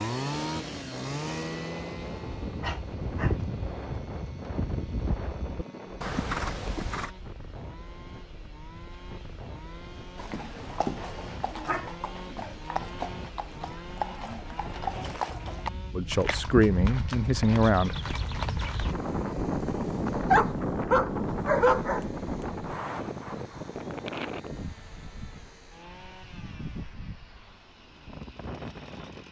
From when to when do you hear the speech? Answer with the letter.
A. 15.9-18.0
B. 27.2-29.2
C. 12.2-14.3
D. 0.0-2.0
A.